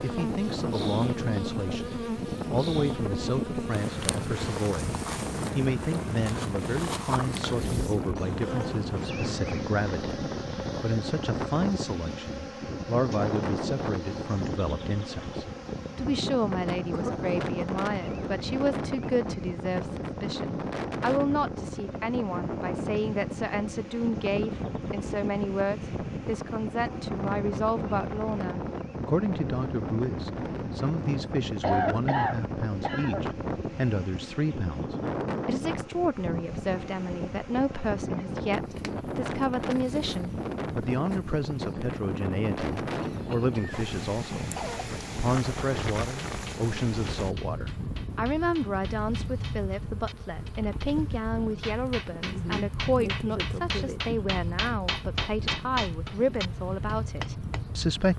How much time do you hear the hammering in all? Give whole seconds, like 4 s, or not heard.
11 s.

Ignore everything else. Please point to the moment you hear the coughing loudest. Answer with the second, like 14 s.
32 s.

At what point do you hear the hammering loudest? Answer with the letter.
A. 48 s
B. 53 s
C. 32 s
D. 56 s
D.